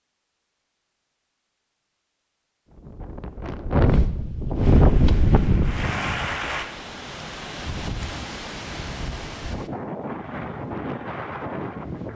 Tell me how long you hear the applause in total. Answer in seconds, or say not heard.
2 s.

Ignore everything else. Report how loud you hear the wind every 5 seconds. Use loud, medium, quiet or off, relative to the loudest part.
loud, medium, medium.